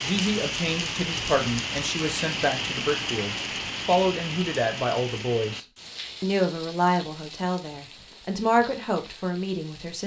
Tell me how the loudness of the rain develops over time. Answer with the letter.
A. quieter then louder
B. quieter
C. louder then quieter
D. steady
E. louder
B.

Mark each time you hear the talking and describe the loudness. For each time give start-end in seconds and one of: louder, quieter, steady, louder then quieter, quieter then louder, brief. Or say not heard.
0.0-10.0 steady.